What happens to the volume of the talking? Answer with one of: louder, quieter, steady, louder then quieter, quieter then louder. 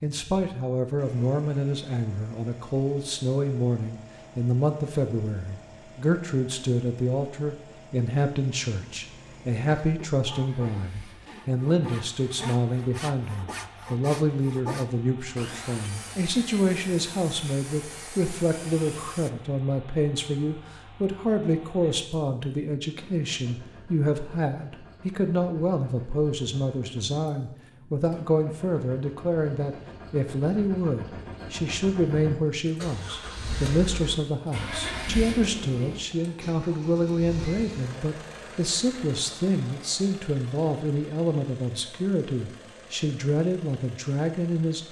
steady.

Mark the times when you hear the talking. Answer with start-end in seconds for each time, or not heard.
0.0-44.8.